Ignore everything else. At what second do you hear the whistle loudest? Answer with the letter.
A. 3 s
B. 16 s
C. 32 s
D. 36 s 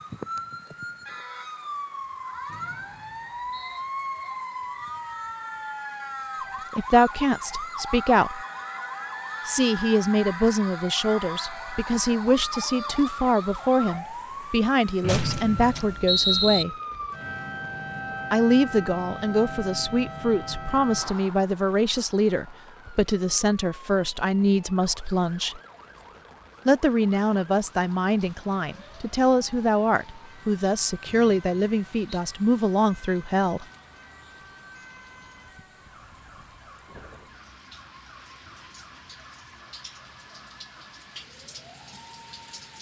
B.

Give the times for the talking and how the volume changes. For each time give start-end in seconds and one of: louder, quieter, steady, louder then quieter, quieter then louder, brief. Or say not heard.
6.7-8.4 brief
9.4-16.8 steady
18.3-25.6 steady
26.6-33.6 steady.